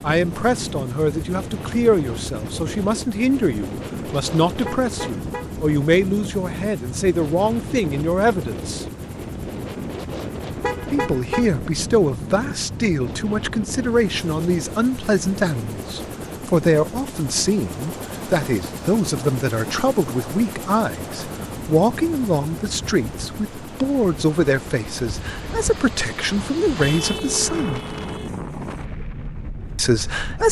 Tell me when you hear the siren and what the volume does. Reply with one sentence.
You can't hear the siren here.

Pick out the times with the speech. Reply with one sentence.
The speech can be heard from 0.0 to 8.8 s, from 10.9 to 27.8 s and from 29.8 to 30.4 s.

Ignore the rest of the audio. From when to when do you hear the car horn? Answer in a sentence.
You can hear the car horn from 4.5 to 5.5 s, from 10.4 to 11.6 s and from 26.8 to 28.3 s.